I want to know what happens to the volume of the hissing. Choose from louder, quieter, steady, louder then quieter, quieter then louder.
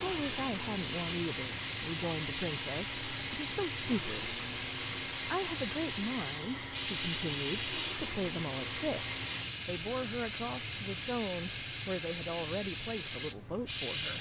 steady.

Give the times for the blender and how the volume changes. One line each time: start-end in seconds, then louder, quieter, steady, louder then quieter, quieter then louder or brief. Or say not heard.
0.0-9.5 steady.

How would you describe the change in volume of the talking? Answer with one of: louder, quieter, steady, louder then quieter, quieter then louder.
steady.